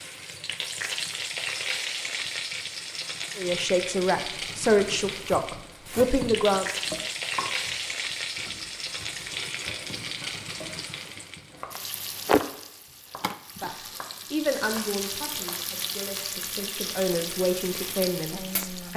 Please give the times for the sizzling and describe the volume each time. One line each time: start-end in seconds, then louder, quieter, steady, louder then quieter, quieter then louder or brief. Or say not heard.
0.0-18.9 steady.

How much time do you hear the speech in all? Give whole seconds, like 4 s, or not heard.
9 s.